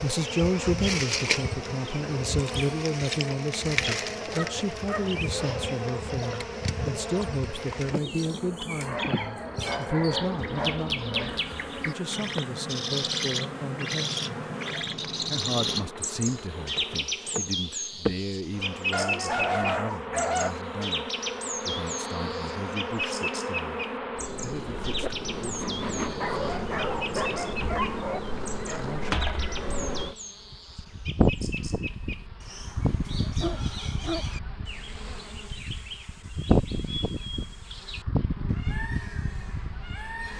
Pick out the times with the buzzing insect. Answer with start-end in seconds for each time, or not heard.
0.0-40.3.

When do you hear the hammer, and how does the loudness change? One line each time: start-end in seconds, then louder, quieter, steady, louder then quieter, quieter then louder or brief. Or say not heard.
not heard.